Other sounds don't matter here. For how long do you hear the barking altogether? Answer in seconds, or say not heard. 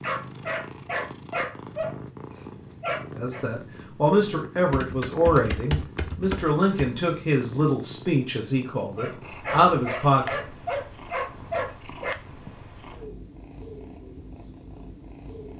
7 s.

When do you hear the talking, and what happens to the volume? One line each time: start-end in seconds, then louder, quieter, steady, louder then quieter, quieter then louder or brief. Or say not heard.
3.1-10.4 steady.